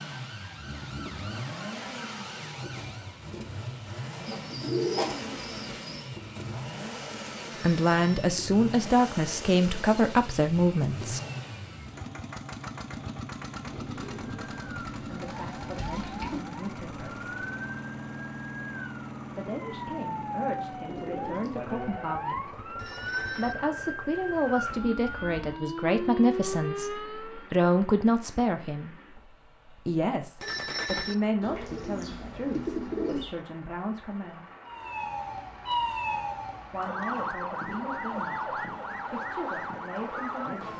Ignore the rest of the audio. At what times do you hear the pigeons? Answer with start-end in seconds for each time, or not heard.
4.2-6.0, 13.6-16.4, 20.9-21.9, 31.4-33.4.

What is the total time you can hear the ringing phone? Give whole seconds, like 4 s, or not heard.
2 s.